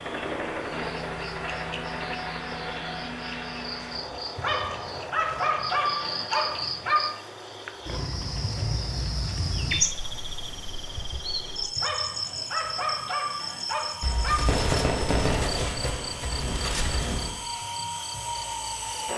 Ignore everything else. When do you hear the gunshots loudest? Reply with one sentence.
The volume of the gunshots peaks at 15 seconds.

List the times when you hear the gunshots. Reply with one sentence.
The gunshots can be heard from 14.0 to 17.4 s.